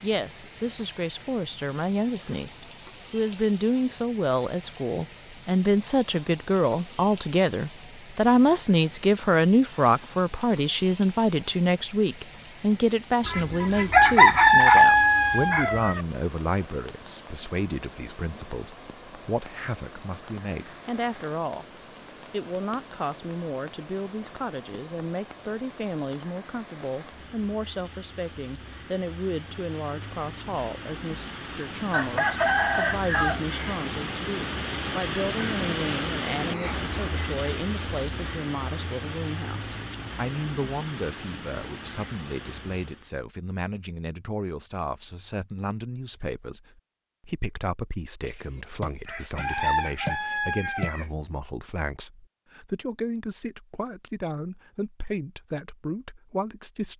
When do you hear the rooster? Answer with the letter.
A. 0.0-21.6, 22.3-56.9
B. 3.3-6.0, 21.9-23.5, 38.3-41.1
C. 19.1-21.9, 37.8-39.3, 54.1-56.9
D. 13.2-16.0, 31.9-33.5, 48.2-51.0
D.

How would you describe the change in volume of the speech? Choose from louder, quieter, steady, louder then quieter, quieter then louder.
quieter.